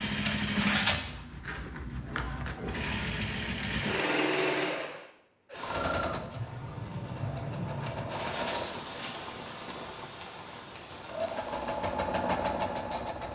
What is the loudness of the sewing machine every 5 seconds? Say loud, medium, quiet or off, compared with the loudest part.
loud, medium, loud.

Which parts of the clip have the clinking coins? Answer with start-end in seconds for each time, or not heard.
0.2-1.0, 7.8-9.2.